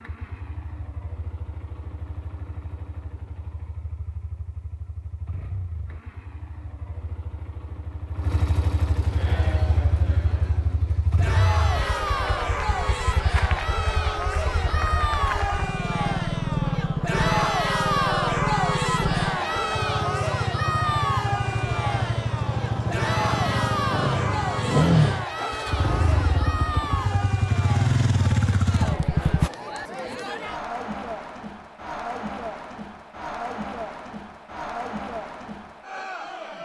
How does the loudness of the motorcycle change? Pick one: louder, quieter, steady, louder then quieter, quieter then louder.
louder.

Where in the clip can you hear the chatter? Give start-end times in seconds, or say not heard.
9.1-36.6.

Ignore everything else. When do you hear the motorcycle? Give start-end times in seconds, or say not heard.
0.0-29.5.